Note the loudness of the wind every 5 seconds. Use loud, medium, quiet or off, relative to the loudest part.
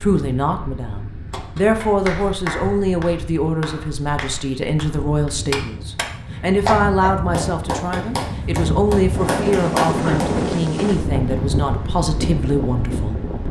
quiet, loud, loud.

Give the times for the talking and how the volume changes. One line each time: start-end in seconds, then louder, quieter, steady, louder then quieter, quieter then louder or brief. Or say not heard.
0.0-13.2 steady.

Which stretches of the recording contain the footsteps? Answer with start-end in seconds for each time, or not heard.
not heard.